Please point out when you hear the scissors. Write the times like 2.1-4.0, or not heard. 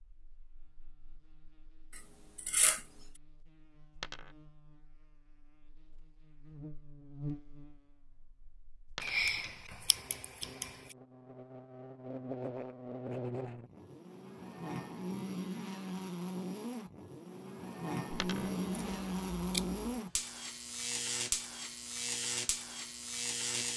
1.9-2.9, 9.0-10.9, 18.4-20.0.